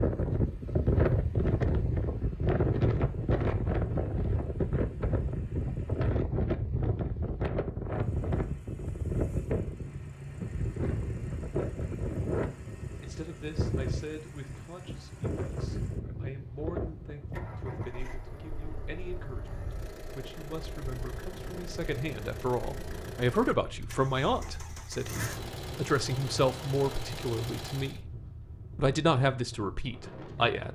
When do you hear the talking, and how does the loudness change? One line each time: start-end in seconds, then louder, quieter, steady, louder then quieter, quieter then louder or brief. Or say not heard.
12.9-28.1 louder
28.8-30.7 brief.